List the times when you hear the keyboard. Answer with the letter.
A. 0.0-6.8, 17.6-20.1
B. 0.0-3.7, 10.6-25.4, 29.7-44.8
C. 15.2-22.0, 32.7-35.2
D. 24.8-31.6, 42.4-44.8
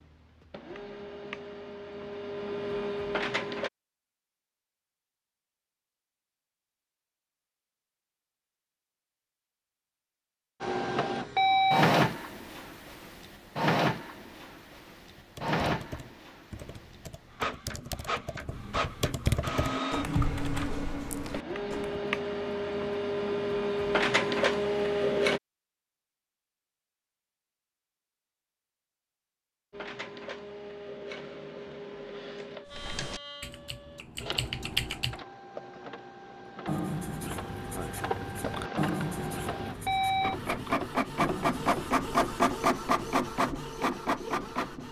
C.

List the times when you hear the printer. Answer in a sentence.
The printer can be heard from 0.0 to 3.7 s, from 10.6 to 25.4 s and from 29.7 to 44.8 s.